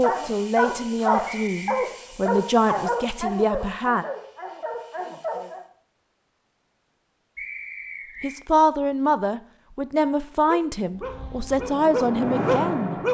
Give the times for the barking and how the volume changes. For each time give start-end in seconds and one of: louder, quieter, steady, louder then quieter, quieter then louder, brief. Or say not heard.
0.0-5.7 quieter
10.4-13.0 brief.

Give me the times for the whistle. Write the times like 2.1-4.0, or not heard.
1.2-1.9, 7.3-8.3.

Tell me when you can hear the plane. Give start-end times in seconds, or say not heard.
10.9-13.0.